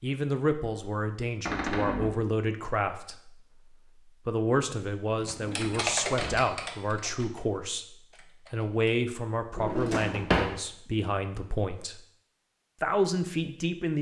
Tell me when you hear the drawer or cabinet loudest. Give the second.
10 s.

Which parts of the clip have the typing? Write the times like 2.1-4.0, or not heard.
5.2-8.9.